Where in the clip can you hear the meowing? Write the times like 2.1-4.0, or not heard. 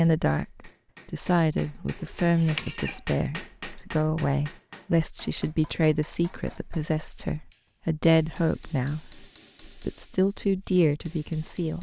2.0-3.0.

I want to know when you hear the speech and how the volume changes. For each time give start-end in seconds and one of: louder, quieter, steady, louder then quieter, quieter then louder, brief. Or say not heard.
0.0-11.7 steady.